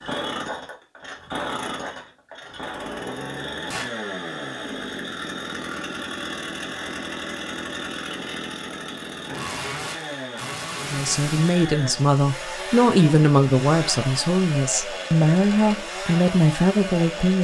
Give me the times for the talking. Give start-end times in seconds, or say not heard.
10.8-17.3.